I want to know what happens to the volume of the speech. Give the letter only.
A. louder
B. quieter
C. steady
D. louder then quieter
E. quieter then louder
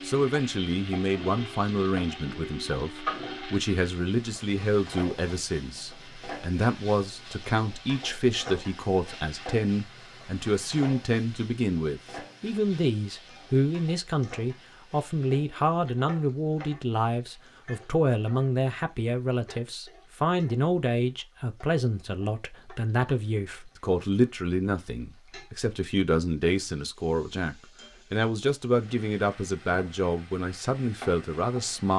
C.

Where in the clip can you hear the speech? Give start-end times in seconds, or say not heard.
0.0-31.9.